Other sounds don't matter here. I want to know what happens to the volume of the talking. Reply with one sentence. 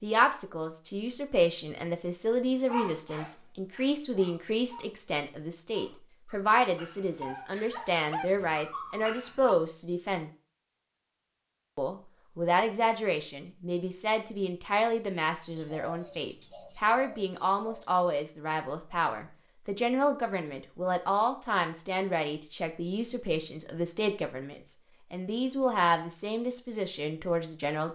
The volume of the talking stays about the same.